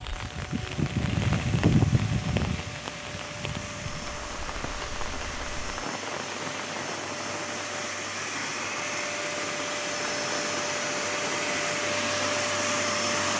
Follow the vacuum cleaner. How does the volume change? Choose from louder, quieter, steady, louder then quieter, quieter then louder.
louder.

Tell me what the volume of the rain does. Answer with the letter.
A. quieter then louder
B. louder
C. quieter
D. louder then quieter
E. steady
C.